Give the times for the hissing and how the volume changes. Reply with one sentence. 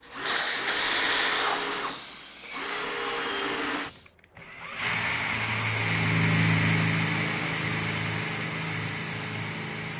The hissing can be heard from 0.1 to 4.0 s, getting quieter.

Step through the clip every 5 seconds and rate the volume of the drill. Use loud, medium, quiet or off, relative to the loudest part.
medium, loud.